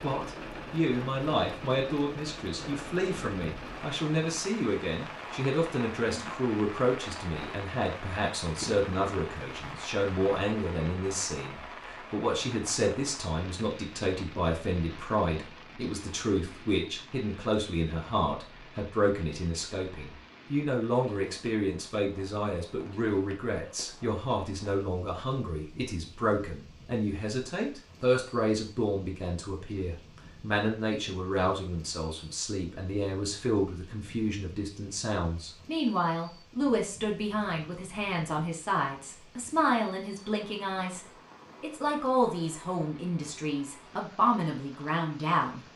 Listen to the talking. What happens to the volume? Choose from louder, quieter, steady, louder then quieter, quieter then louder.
steady.